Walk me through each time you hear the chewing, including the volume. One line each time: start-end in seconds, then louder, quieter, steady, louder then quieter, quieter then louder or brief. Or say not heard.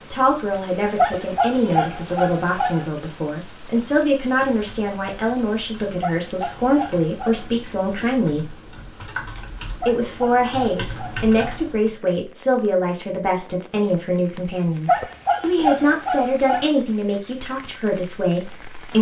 not heard.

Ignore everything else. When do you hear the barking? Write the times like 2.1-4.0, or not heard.
0.9-2.9, 6.0-7.5, 9.8-11.7, 14.8-16.7.